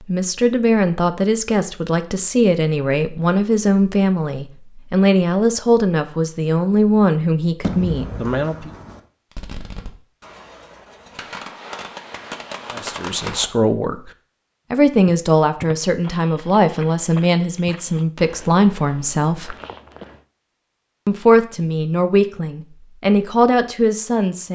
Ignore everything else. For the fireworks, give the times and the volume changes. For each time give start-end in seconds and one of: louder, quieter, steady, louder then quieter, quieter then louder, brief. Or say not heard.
7.6-13.4 quieter then louder.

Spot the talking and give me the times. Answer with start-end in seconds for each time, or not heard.
0.0-8.7, 12.7-14.1, 14.7-19.6, 21.1-24.5.